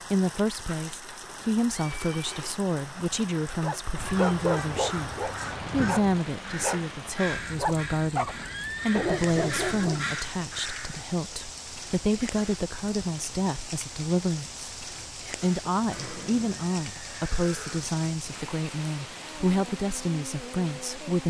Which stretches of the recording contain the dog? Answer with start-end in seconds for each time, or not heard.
3.6-10.2.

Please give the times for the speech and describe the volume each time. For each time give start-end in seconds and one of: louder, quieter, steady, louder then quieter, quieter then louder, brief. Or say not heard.
0.1-21.2 steady.